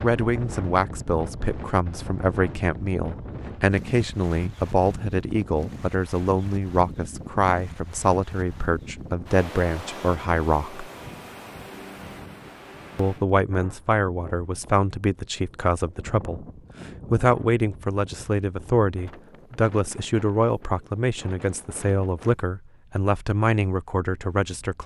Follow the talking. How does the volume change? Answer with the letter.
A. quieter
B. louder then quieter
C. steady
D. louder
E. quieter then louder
C.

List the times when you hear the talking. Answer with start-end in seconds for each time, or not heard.
0.0-10.8, 12.9-16.4, 17.1-24.8.